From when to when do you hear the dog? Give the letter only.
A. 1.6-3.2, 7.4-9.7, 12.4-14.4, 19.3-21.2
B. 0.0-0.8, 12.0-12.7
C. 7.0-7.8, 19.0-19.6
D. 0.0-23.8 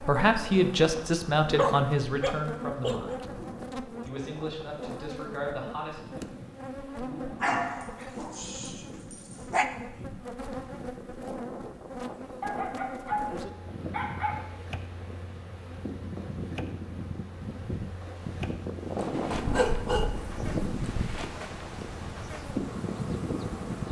A.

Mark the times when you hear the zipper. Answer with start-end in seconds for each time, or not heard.
7.0-7.8, 19.0-19.6.